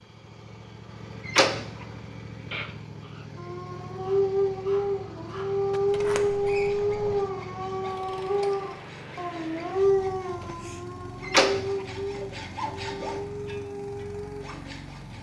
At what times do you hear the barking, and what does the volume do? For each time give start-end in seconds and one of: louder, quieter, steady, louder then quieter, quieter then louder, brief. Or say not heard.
3.4-14.4 quieter.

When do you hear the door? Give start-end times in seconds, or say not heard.
1.2-1.9, 5.9-7.2, 11.2-11.7.